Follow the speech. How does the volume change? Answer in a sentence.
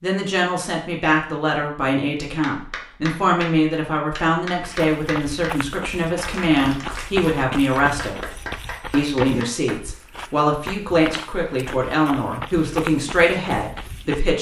The loudness of the speech stays about the same.